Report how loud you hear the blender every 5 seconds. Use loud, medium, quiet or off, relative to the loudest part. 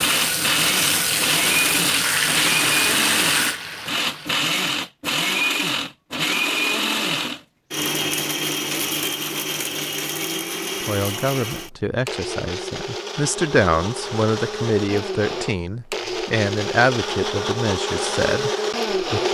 loud, loud, medium, loud.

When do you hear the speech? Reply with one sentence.
You can hear the speech from 10.8 to 19.2 s.